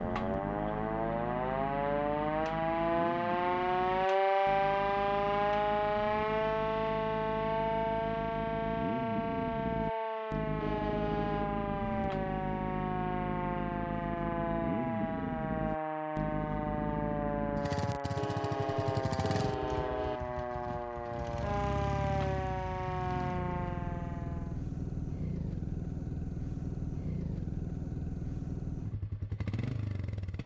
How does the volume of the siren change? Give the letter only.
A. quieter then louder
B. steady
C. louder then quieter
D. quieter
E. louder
D.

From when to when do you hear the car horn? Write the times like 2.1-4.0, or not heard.
10.6-11.6, 18.1-20.2.